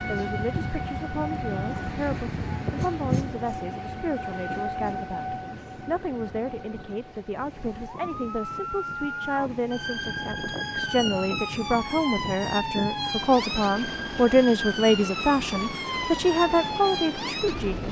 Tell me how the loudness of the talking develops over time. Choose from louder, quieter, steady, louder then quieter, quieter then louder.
louder.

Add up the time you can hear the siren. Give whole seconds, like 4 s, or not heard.
18 s.